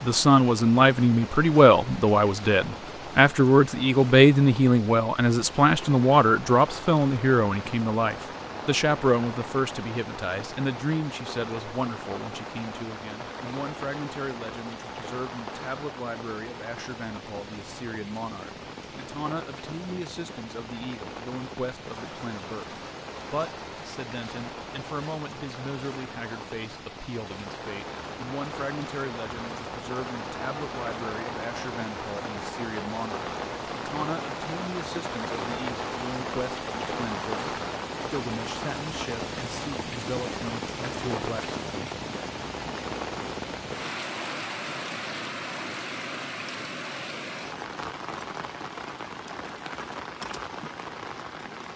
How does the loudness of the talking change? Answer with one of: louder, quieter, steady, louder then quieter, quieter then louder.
quieter.